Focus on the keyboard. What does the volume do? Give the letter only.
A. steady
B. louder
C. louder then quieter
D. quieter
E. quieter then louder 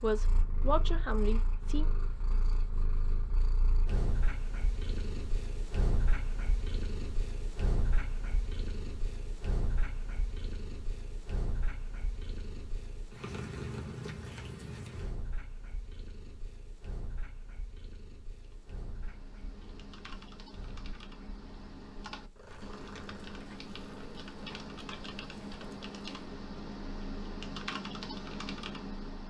B.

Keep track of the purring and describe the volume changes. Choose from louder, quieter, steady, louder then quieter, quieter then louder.
quieter.